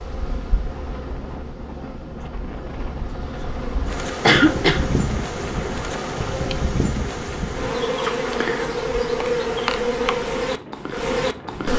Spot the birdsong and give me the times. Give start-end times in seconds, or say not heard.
not heard.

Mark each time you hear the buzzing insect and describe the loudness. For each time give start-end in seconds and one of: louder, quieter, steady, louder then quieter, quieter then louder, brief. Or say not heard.
0.0-11.7 louder.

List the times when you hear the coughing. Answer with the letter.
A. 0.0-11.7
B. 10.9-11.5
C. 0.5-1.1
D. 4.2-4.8
D.